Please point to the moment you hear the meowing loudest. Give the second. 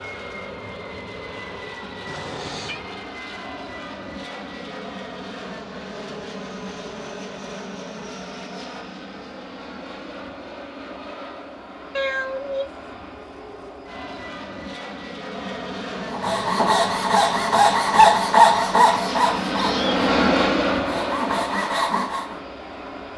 12 s.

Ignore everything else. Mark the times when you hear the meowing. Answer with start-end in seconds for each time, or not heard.
2.0-2.9, 11.9-12.7, 19.5-20.0.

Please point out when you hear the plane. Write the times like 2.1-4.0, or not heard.
0.0-23.1.